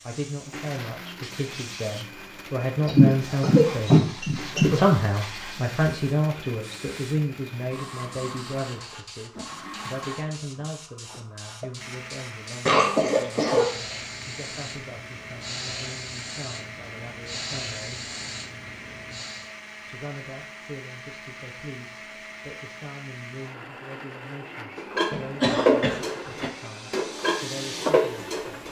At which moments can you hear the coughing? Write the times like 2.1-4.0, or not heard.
2.9-4.8, 12.7-13.8, 25.1-26.5.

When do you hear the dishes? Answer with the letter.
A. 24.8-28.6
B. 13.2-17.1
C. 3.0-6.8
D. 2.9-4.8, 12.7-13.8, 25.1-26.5
A.